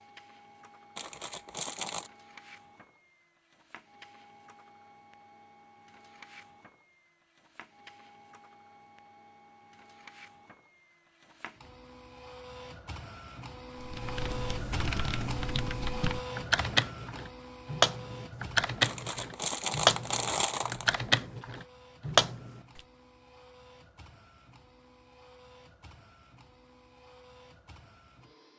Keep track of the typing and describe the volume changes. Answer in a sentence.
The loudness of the typing goes up.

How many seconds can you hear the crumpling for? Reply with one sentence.
You can hear the crumpling for 3 seconds altogether.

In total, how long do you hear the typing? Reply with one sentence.
You can hear the typing for 9 seconds altogether.